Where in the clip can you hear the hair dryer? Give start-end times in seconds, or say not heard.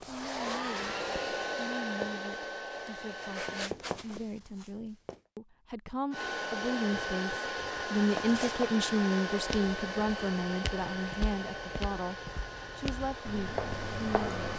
0.0-3.7, 6.1-14.5.